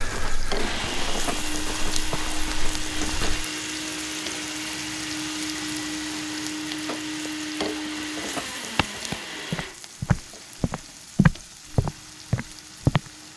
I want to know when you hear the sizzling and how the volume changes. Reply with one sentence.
You can hear the sizzling from 0.0 to 13.3 s, getting quieter.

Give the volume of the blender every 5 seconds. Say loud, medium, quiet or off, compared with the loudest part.
loud, loud, quiet.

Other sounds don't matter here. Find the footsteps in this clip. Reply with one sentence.
The footsteps can be heard from 0.0 to 3.5 s and from 8.8 to 13.1 s.